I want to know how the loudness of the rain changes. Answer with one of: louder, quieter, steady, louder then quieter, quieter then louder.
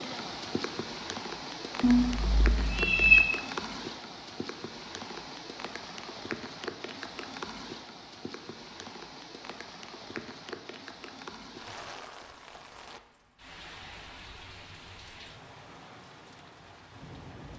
quieter.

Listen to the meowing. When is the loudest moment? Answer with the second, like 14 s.
3 s.